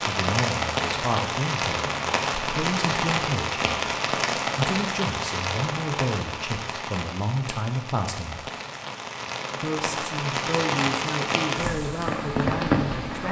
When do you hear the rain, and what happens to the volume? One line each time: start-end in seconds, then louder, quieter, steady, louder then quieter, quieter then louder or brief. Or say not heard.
0.0-13.2 quieter then louder.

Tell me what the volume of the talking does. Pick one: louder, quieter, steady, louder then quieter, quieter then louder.
steady.